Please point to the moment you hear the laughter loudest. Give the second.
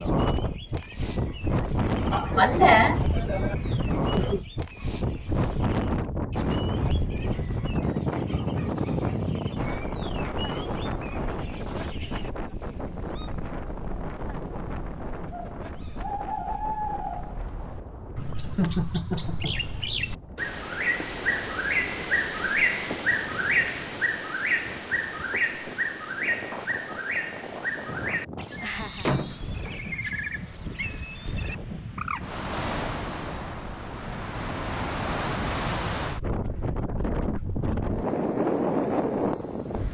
3 s.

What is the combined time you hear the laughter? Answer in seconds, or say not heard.
4 s.